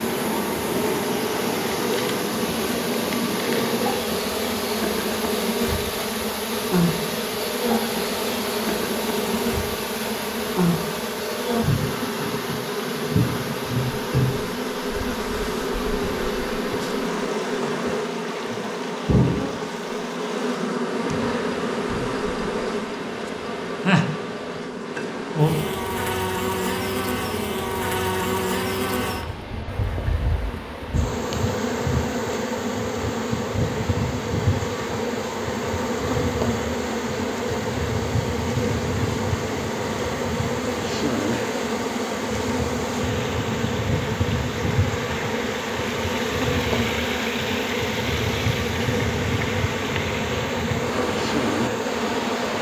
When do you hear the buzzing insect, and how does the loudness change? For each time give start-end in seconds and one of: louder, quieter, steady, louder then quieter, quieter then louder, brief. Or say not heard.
0.0-52.5 steady.